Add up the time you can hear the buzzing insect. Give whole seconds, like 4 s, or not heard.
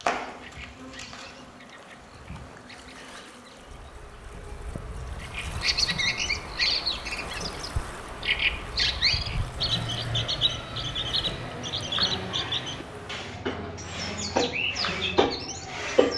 16 s.